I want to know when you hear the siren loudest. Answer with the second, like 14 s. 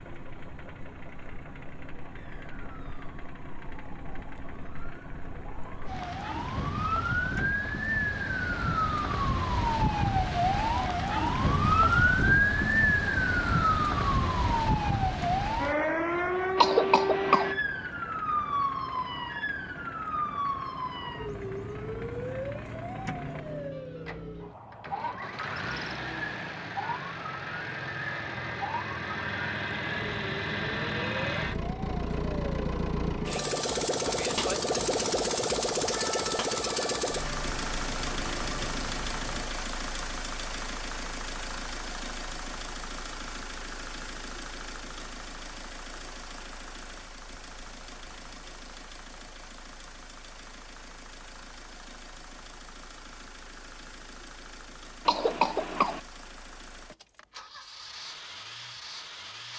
12 s.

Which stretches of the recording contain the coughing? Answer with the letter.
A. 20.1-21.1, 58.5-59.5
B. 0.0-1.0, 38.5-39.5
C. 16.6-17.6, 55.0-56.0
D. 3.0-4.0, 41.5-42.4
C.